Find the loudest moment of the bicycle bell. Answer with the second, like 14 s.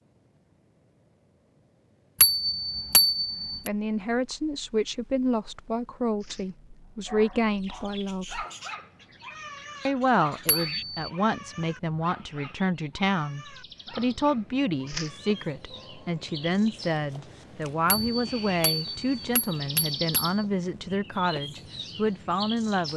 3 s.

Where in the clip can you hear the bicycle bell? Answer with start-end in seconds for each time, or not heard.
2.2-3.7, 10.4-11.1, 17.9-20.4.